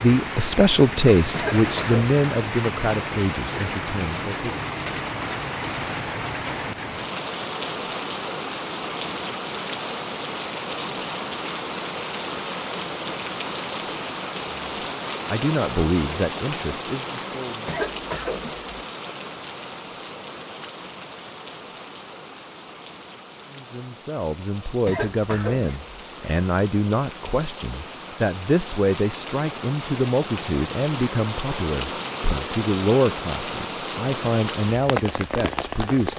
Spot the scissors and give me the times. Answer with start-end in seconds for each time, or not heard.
not heard.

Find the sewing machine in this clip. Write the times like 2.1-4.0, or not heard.
not heard.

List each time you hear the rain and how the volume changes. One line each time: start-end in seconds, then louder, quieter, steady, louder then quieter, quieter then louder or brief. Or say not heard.
0.0-36.1 quieter then louder.